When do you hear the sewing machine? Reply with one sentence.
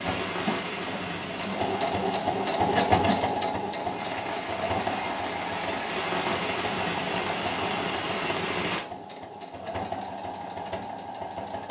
The sewing machine can be heard from 0.0 to 11.6 s.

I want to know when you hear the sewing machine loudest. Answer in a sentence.
The loudest moment of the sewing machine is at 3 seconds.